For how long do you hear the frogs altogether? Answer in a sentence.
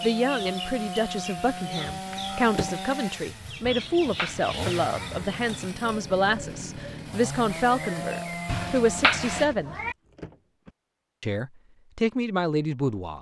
The frogs can't be heard in this clip.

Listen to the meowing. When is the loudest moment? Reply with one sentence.
The volume of the meowing peaks at 9 seconds.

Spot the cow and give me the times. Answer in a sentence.
You can't hear the cow here.